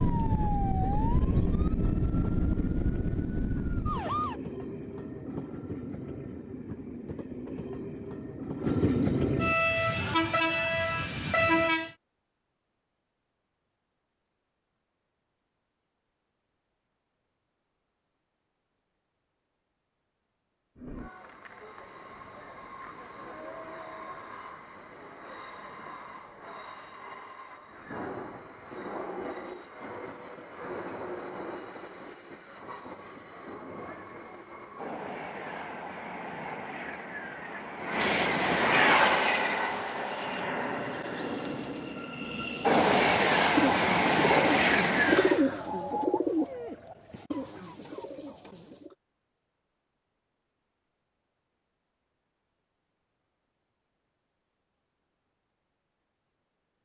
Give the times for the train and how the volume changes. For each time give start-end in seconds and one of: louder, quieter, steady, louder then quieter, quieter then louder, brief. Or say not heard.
0.0-11.9 louder
20.8-45.5 louder.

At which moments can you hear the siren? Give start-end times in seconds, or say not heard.
0.0-4.3.